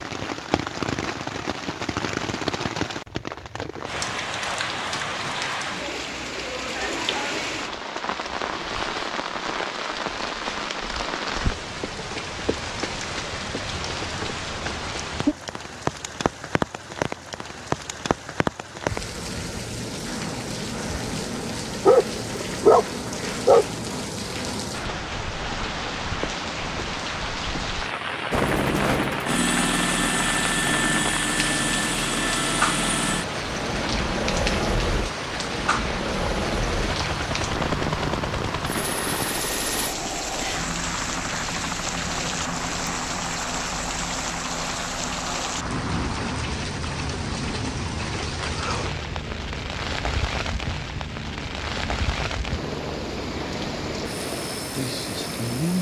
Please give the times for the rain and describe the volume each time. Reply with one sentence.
You can hear the rain from 0.0 to 55.7 s, at a steady volume.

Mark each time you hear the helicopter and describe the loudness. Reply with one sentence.
The helicopter can be heard from 28.3 to 55.7 s, getting quieter.